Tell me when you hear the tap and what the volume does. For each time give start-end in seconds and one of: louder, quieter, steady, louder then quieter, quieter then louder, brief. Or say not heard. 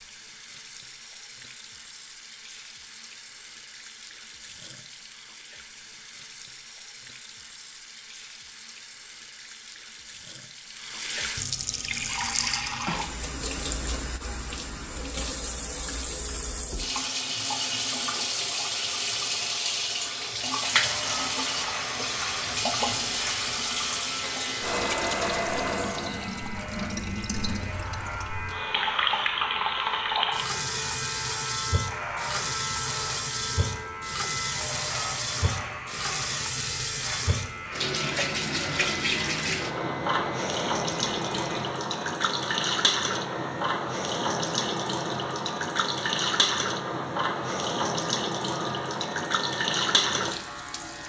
0.0-51.0 louder.